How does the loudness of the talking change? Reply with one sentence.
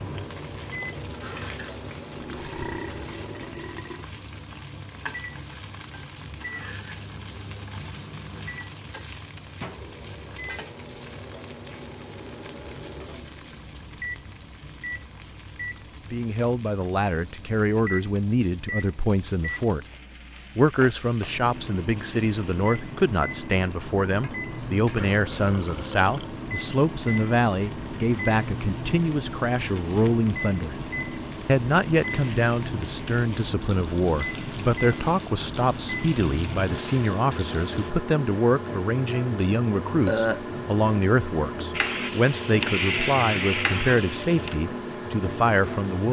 The loudness of the talking stays about the same.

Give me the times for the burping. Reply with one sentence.
You can hear the burping from 2.1 to 4.0 s, from 24.9 to 26.4 s and from 40.0 to 40.5 s.